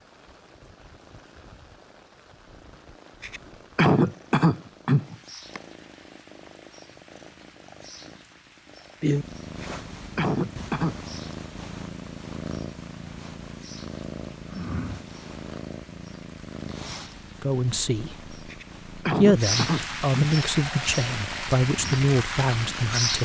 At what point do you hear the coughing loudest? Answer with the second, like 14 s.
4 s.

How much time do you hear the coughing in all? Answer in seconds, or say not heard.
6 s.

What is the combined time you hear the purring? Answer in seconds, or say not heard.
23 s.